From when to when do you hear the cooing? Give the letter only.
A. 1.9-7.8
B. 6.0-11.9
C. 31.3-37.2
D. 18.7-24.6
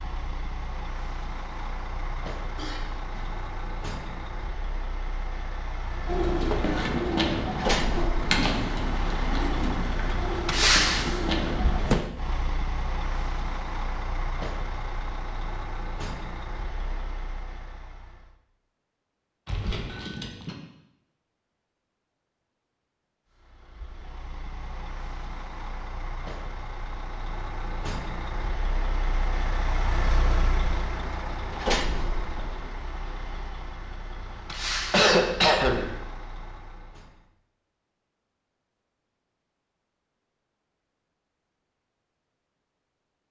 B.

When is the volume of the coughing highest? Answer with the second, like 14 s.
35 s.